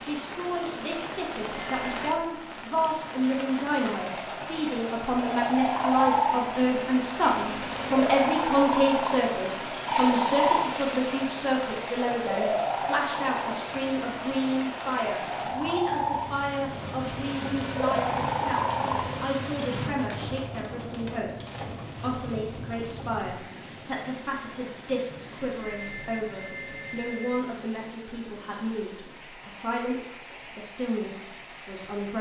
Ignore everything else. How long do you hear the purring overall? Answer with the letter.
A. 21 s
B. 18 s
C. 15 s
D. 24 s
C.